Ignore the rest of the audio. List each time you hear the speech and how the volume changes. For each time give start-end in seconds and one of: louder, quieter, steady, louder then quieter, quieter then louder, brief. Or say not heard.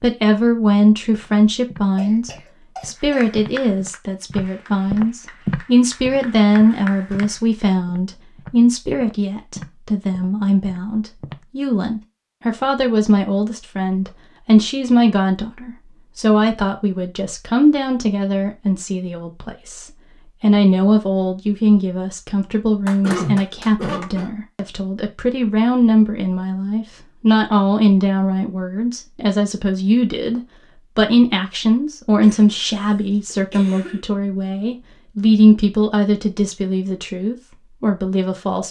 0.0-38.6 steady.